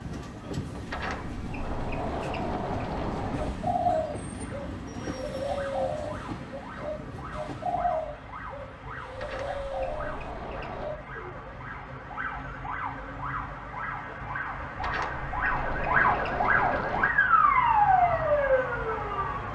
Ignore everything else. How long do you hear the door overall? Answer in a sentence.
You can hear the door for 7 seconds altogether.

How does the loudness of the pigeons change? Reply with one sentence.
The loudness of the pigeons goes down, then up.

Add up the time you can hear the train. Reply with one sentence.
You can hear the train for 8 seconds altogether.